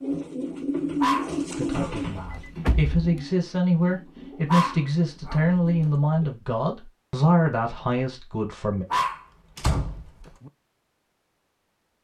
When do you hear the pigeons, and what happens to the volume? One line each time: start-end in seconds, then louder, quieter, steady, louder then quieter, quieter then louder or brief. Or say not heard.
0.0-6.3 quieter.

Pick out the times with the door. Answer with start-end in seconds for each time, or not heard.
2.0-3.2, 9.6-10.5.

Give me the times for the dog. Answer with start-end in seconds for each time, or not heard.
1.0-2.4, 4.5-5.9, 8.9-10.3.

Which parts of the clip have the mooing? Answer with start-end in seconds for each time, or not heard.
not heard.